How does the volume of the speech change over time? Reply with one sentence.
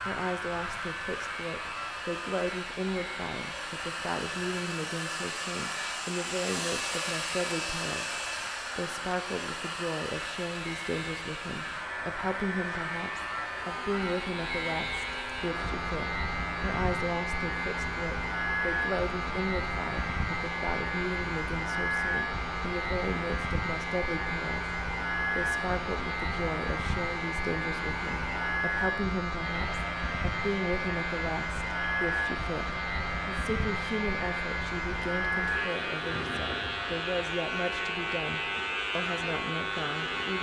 The loudness of the speech stays about the same.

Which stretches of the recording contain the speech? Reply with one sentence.
You can hear the speech from 0.1 to 40.3 s.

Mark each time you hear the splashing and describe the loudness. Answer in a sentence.
The splashing can't be heard in this clip.